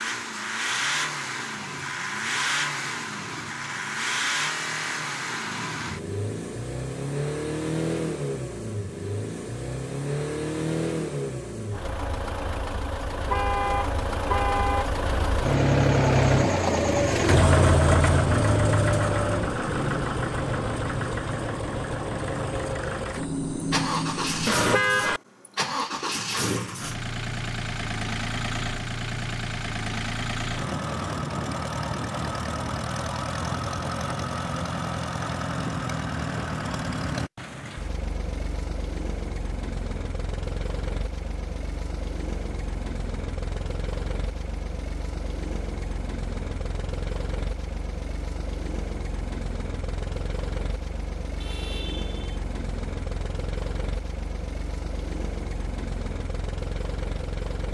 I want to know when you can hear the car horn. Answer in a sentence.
The car horn can be heard from 13.3 to 14.9 s, from 23.1 to 25.2 s and from 51.4 to 52.4 s.